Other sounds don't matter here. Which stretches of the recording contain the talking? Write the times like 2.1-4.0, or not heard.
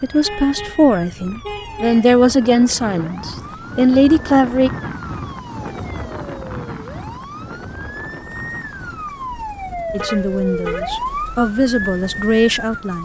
0.0-4.7, 9.9-12.9.